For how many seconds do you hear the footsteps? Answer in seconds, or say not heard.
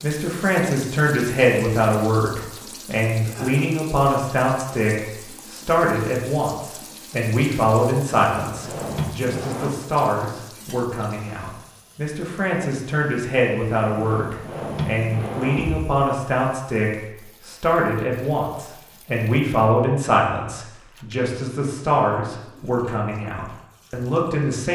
not heard.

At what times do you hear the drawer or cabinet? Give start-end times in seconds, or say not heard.
8.2-9.8, 13.9-15.8.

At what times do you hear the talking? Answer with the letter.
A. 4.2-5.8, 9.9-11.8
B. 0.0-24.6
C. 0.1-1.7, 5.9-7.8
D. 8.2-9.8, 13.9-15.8
B.